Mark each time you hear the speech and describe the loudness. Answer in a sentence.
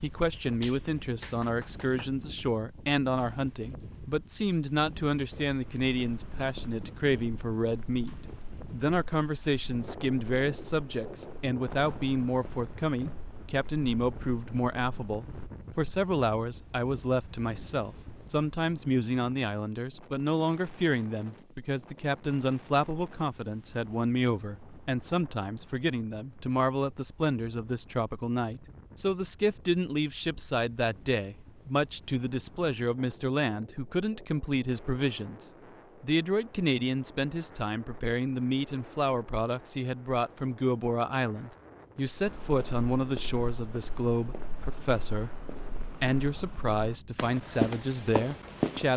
The speech can be heard from 0.0 to 48.9 s, at a steady volume.